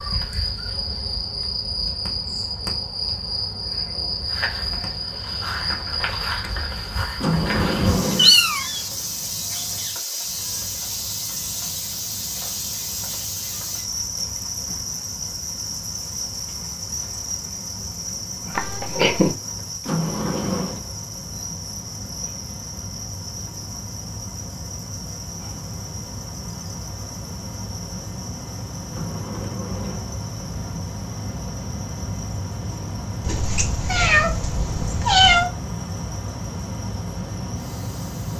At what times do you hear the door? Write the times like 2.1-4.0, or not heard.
7.2-8.3, 19.9-20.9, 28.9-30.1.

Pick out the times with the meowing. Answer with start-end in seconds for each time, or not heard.
8.2-8.8, 18.6-19.3, 33.2-35.5.